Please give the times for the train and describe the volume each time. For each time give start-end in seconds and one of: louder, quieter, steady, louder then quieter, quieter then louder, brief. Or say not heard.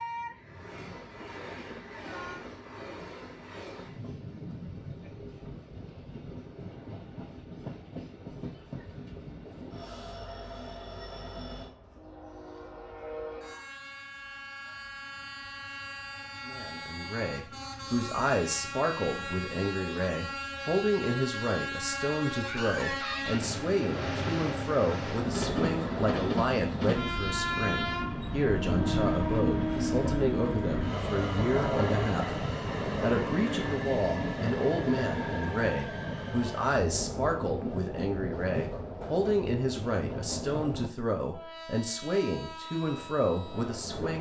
0.0-44.1 louder then quieter.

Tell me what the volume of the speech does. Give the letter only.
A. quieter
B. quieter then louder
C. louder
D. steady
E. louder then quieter
D.